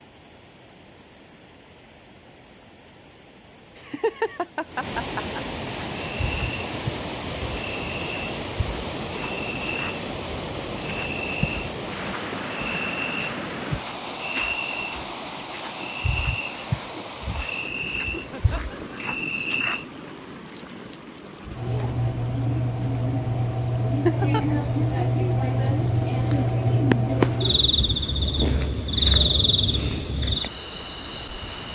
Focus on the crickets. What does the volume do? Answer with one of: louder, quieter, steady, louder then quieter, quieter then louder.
louder.